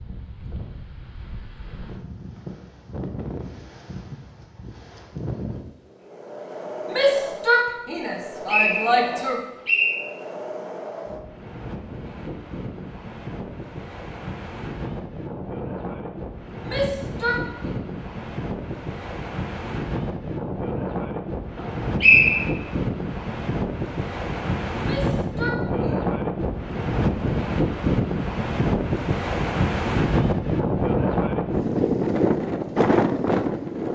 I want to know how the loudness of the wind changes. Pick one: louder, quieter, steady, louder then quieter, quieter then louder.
louder.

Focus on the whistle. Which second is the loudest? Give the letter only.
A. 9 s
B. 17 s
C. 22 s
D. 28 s
C.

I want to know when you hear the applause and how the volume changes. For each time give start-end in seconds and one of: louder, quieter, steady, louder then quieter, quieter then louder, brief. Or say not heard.
not heard.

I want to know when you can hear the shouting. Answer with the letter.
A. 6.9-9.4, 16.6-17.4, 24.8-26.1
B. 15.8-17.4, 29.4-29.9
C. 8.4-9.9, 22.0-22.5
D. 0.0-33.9
A.